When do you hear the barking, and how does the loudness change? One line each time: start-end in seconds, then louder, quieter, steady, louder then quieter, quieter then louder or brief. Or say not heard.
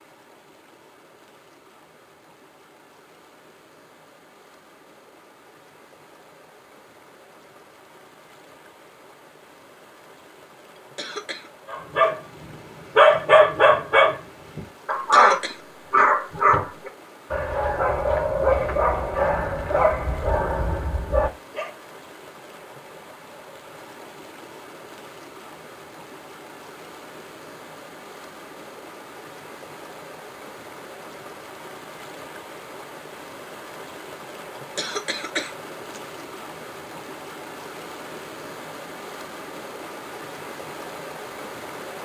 11.7-21.7 quieter.